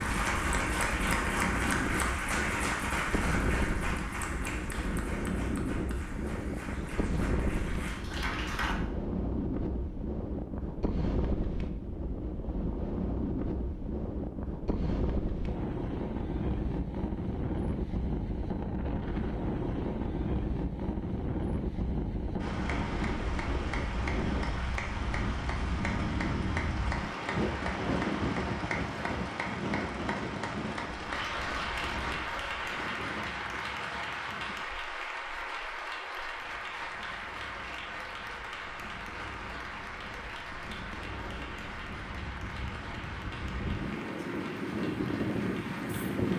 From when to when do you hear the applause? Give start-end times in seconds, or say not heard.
0.0-8.8, 22.4-46.3.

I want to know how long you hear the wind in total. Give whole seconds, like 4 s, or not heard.
46 s.